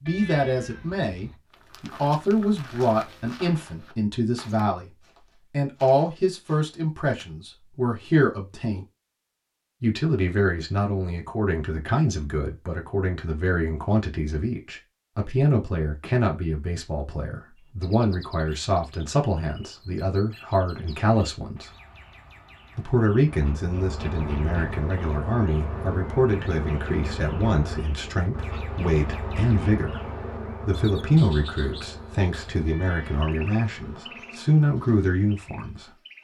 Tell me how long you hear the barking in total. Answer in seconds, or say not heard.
not heard.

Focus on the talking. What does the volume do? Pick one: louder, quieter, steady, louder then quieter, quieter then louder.
steady.